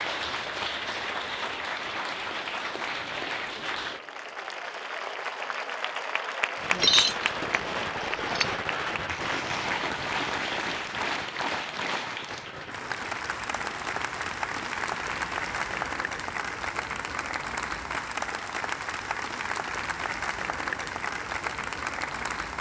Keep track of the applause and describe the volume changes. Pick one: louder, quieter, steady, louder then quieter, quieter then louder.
steady.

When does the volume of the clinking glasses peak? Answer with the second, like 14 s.
7 s.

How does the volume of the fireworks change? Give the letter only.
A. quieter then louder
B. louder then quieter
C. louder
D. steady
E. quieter
E.